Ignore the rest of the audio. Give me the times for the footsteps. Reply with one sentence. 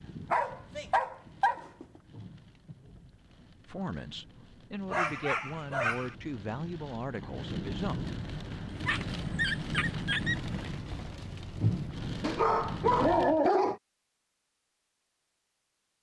The footsteps can't be heard in this clip.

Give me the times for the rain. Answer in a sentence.
You can hear the rain from 0.0 to 13.4 s.